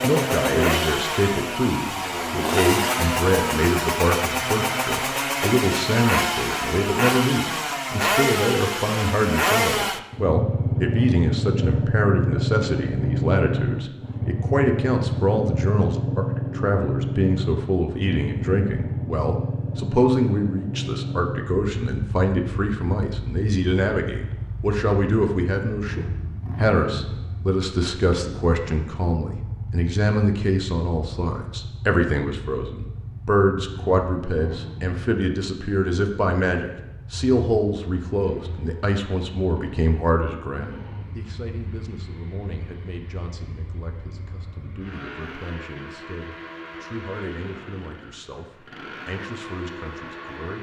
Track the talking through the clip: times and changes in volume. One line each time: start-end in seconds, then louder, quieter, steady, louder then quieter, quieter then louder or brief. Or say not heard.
0.0-50.5 quieter.